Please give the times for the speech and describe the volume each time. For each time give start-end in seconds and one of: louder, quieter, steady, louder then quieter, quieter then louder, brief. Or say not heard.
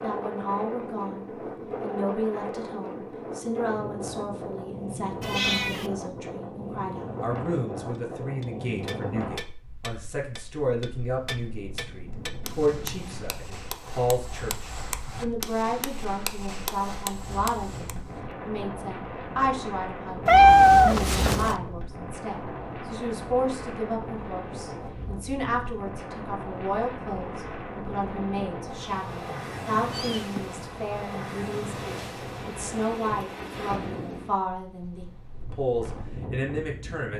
0.0-37.1 steady.